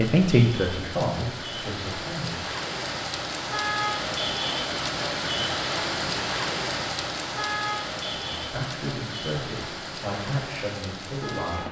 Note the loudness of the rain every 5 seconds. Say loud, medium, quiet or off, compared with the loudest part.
loud, loud, medium.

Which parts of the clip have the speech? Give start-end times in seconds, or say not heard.
0.0-2.5, 8.2-11.6.